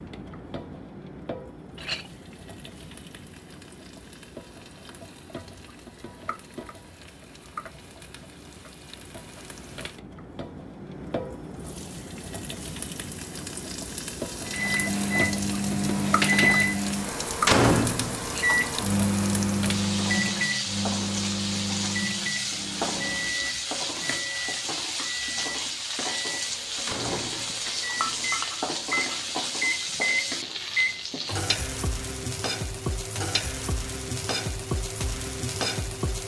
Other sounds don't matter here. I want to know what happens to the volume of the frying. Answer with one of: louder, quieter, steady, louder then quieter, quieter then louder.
louder.